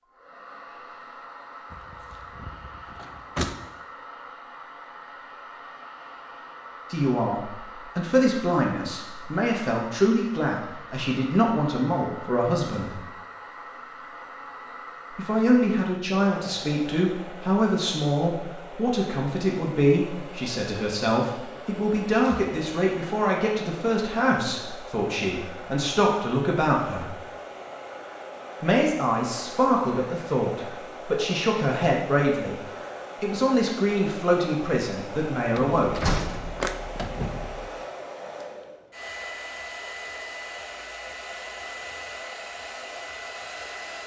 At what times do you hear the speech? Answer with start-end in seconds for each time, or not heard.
6.9-13.0, 15.2-27.1, 28.6-32.5, 33.2-36.0.